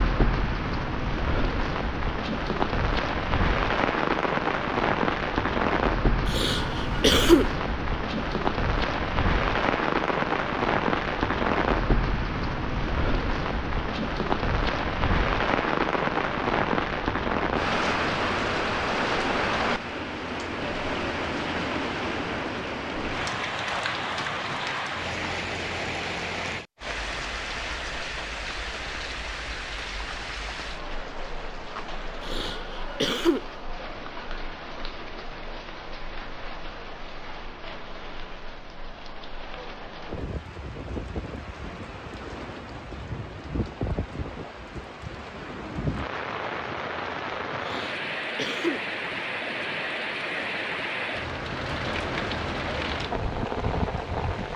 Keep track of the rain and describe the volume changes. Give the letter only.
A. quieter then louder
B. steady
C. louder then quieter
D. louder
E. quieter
A.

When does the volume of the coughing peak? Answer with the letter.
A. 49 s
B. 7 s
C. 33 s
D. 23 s
B.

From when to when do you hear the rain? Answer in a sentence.
The rain can be heard from 0.0 to 54.5 s.